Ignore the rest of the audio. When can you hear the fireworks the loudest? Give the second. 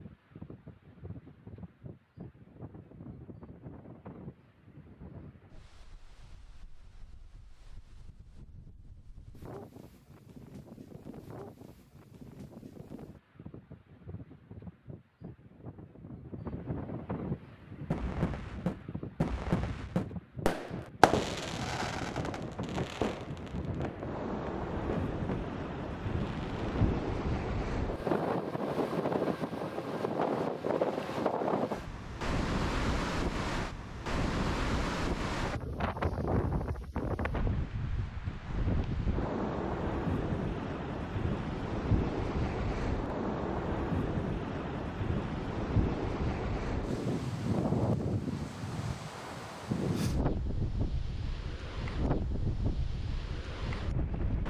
21 s.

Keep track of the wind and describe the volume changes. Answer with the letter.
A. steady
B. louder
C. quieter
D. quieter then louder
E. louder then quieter
B.